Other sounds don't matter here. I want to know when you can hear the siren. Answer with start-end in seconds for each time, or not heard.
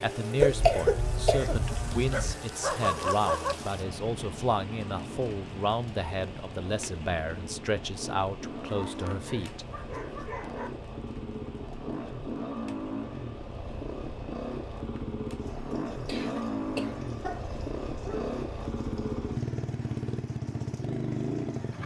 not heard.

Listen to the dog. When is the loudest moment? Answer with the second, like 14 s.
3 s.